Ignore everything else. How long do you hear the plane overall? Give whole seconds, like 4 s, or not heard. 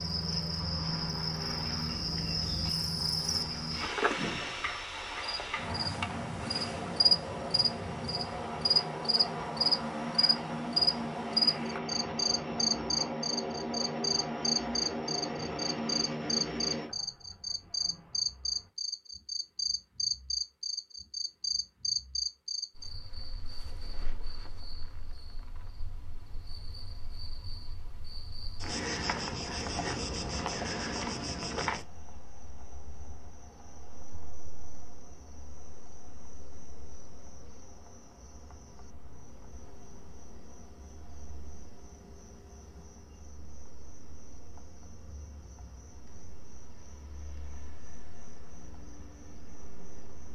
17 s.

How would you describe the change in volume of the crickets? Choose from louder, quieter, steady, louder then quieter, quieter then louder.
quieter.